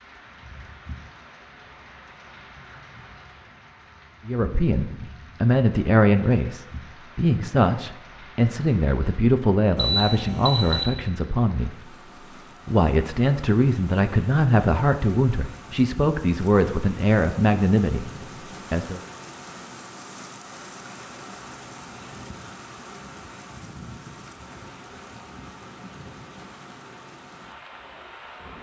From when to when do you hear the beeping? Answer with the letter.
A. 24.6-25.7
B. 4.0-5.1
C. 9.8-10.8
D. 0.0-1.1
C.